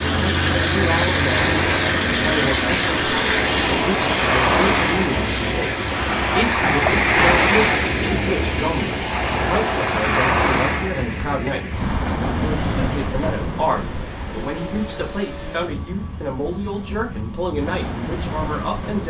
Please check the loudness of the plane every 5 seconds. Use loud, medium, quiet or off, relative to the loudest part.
loud, medium, quiet, quiet.